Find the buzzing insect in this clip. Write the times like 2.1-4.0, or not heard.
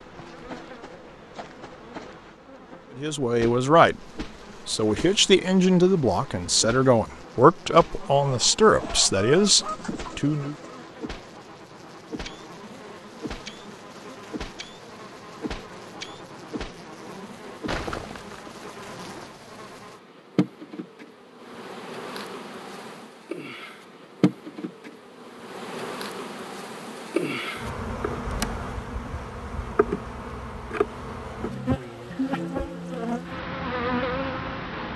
0.0-34.9.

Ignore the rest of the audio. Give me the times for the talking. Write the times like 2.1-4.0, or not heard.
3.0-10.6.